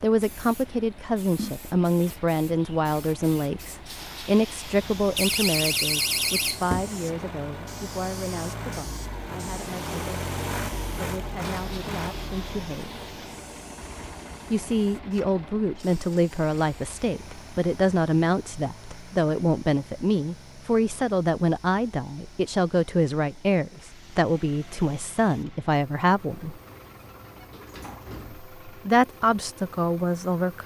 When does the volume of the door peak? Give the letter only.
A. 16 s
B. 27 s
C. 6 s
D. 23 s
C.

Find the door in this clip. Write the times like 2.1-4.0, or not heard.
5.2-6.9, 26.4-28.4.